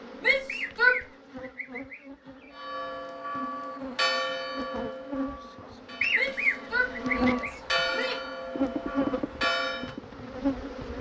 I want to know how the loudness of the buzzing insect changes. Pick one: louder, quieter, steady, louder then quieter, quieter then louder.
louder.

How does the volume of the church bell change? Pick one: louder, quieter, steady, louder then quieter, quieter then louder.
quieter then louder.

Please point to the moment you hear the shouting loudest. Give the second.
1 s.